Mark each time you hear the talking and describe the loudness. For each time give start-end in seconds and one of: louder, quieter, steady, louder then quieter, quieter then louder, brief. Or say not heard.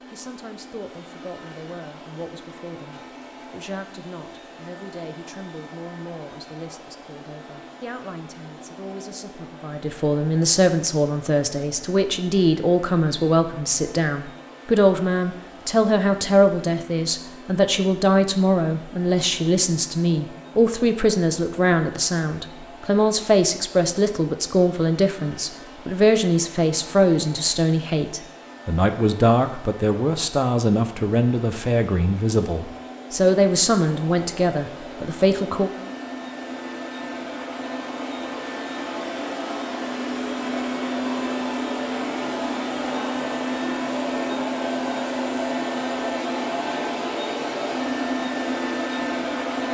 0.1-35.7 louder.